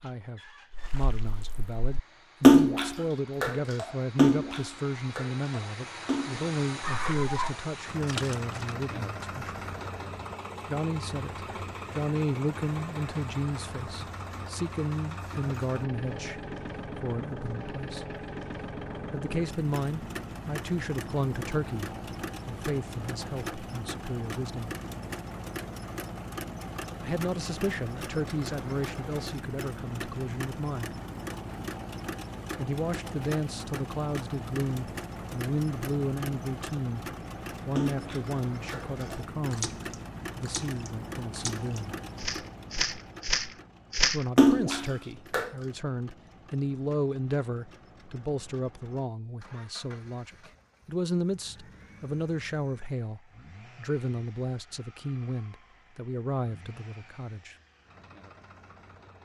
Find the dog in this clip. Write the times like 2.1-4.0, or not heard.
6.8-7.5.